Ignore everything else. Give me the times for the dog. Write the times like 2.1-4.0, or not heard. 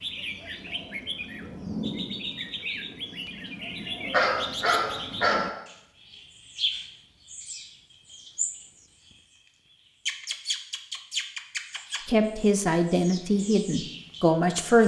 4.0-5.6.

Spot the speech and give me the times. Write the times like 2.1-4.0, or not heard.
12.1-14.8.